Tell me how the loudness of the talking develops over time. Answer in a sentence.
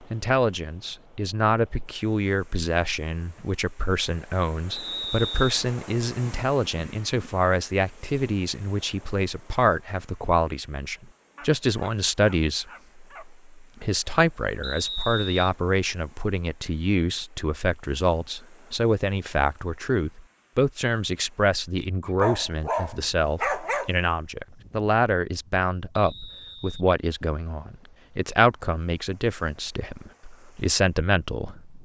The volume of the talking stays about the same.